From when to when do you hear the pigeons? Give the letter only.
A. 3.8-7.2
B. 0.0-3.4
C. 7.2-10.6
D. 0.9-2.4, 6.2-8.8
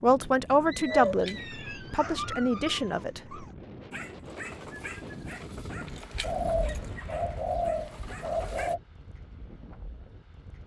D.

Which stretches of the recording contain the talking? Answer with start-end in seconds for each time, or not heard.
0.0-3.4.